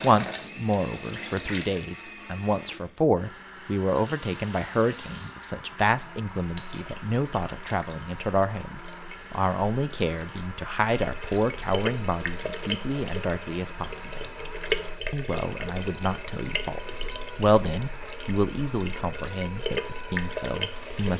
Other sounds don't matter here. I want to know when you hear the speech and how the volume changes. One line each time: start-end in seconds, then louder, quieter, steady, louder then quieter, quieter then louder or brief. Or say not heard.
0.0-14.2 steady
15.1-21.1 louder then quieter.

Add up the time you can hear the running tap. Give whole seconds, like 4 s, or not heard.
19 s.